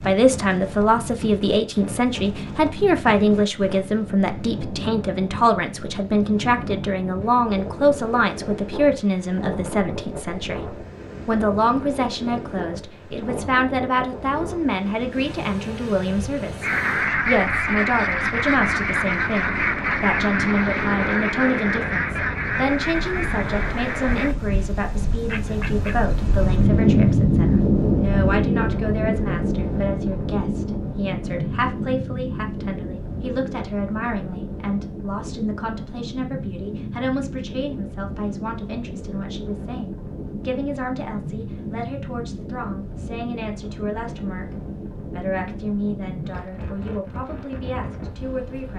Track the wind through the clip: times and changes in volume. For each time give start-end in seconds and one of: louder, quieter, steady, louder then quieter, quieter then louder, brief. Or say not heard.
0.0-48.7 louder then quieter.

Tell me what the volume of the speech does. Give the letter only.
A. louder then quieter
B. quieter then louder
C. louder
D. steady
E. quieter
E.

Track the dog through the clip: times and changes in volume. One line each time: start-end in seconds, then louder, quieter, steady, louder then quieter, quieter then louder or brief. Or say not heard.
not heard.